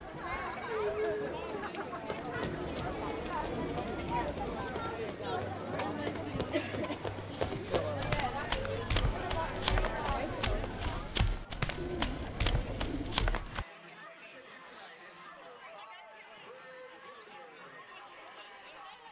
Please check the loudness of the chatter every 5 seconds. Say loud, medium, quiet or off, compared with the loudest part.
loud, loud, medium, quiet.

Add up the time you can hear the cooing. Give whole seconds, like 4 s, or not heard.
4 s.